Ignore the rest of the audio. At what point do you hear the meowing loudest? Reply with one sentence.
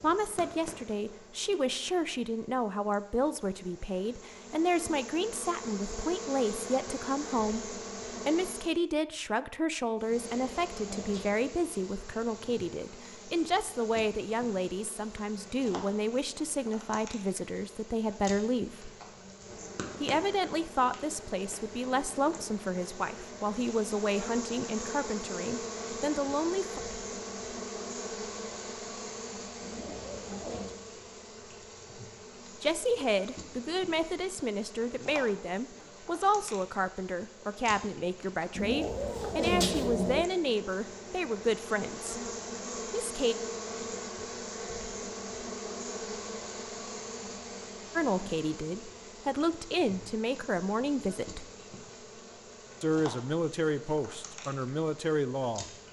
The loudest moment of the meowing is at 40 seconds.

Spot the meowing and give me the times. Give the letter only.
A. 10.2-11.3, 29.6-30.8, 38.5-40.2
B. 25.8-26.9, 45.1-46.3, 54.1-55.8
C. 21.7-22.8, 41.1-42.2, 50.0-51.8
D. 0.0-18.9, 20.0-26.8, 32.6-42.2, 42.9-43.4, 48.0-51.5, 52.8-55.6
A.